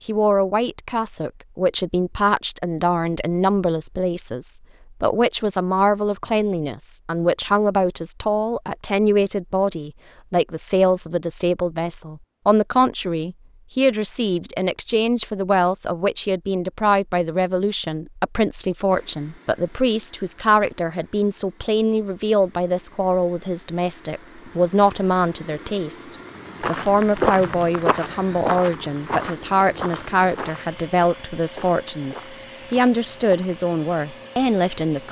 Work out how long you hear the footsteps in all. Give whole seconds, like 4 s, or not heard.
7 s.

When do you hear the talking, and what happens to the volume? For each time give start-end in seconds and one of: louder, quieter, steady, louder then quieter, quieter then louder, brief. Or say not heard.
0.1-35.0 steady.